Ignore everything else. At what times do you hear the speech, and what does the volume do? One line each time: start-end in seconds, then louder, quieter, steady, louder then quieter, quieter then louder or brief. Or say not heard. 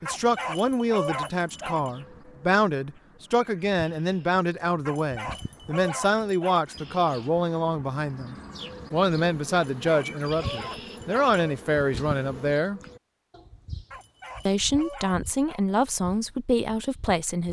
0.0-12.8 steady
14.4-17.4 brief.